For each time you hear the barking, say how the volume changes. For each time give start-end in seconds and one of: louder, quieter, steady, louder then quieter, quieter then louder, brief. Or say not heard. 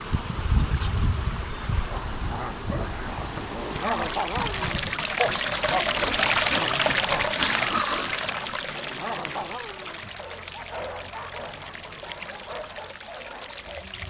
1.8-13.9 quieter.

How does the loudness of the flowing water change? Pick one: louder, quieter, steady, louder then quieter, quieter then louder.
louder then quieter.